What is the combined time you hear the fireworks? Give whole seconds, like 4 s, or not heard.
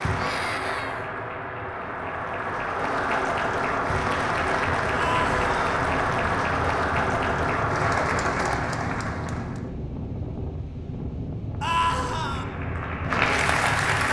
not heard.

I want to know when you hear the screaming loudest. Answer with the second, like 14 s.
12 s.